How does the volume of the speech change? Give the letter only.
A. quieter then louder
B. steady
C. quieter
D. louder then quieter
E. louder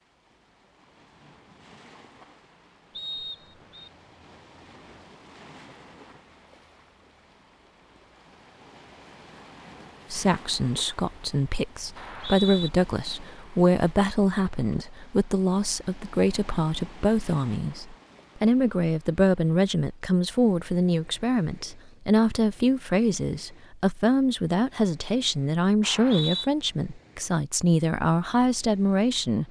B.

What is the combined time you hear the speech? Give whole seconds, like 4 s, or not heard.
19 s.